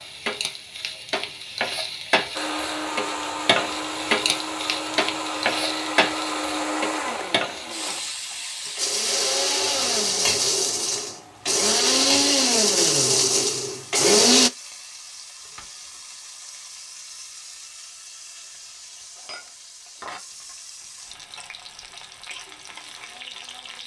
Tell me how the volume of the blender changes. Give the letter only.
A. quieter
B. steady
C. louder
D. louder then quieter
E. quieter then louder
C.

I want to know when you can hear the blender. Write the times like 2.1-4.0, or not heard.
2.4-14.5.